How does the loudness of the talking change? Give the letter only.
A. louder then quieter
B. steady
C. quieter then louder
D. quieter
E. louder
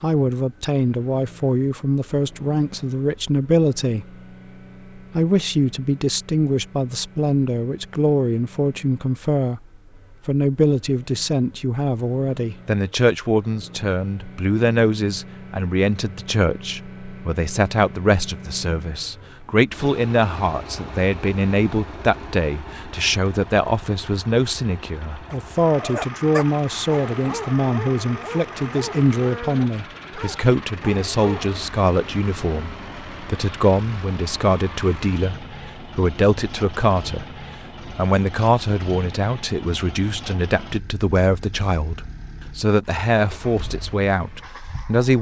B.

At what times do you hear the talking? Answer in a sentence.
The talking can be heard from 0.0 to 4.2 s, from 5.0 to 9.6 s and from 10.2 to 45.1 s.